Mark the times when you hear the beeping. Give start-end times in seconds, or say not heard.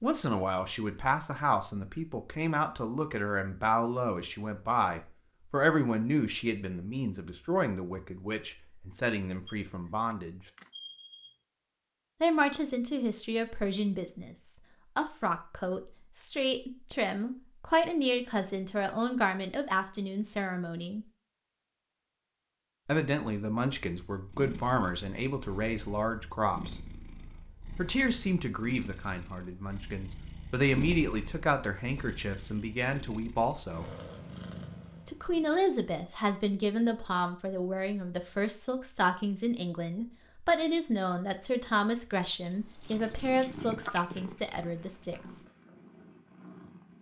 9.4-11.3, 42.4-43.2.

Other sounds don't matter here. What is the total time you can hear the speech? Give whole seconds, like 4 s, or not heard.
40 s.